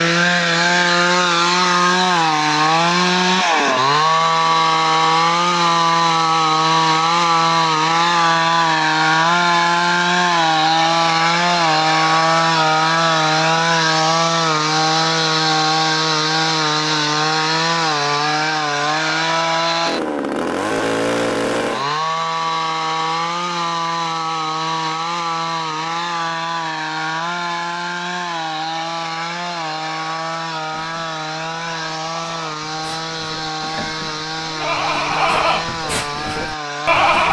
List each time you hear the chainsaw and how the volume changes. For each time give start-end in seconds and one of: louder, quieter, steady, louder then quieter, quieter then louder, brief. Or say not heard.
0.0-37.2 quieter.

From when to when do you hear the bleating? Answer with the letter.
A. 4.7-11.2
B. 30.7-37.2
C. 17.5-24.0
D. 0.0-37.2
B.